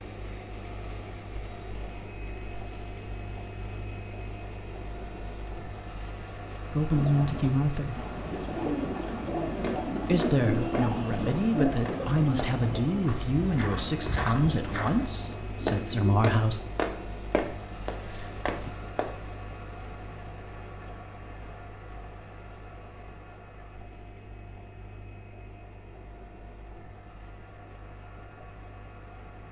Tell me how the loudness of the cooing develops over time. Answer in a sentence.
The volume of the cooing goes down.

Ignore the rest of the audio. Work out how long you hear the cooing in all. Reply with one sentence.
The cooing can be heard for 9 seconds in total.